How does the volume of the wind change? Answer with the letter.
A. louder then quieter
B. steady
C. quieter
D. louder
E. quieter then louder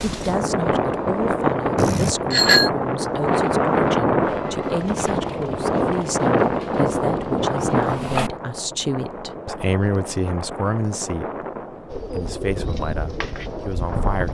C.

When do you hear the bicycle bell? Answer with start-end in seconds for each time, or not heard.
1.8-2.7.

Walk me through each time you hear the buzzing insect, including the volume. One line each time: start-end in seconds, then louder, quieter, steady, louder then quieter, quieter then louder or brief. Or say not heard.
not heard.